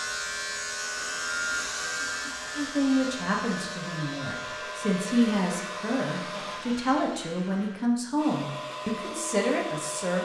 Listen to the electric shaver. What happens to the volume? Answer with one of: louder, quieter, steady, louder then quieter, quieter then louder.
quieter.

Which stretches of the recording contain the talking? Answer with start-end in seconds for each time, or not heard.
2.5-10.2.